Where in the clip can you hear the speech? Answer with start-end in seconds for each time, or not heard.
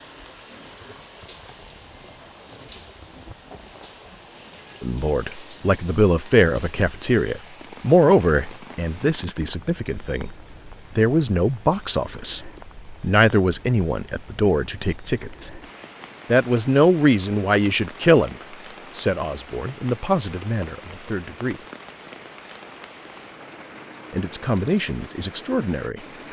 4.8-10.3, 10.9-12.4, 13.0-15.5, 16.3-18.4, 18.9-21.6, 24.1-26.0.